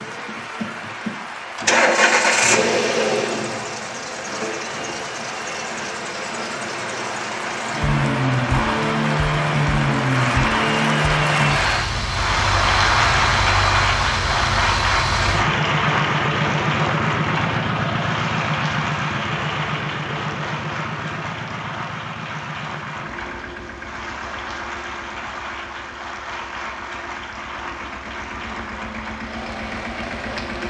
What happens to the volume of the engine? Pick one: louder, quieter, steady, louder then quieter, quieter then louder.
quieter.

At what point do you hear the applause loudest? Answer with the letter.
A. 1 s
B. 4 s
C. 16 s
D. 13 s
D.